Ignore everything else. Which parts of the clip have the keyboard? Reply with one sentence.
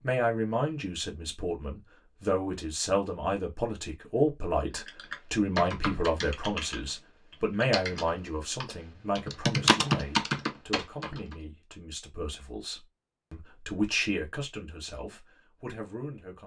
The keyboard can be heard from 4.7 to 11.3 s.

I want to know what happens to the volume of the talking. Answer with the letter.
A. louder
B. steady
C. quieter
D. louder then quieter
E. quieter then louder
E.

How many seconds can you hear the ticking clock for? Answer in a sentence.
You can't hear the ticking clock here.